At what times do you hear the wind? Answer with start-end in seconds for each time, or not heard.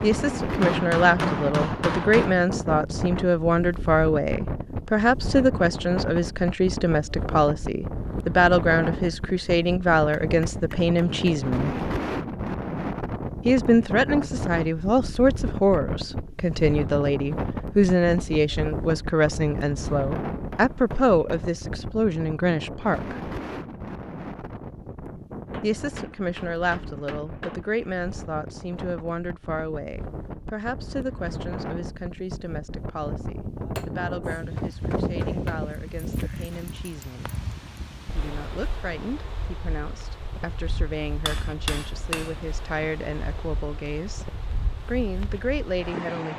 0.0-46.3.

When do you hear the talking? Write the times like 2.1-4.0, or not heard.
0.0-11.8, 13.4-23.2, 25.6-37.4, 38.1-44.2, 44.9-46.3.